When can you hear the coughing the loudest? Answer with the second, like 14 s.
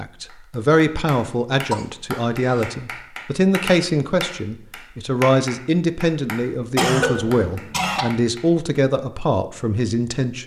7 s.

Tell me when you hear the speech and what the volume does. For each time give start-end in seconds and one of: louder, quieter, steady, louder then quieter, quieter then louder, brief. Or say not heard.
0.0-10.4 steady.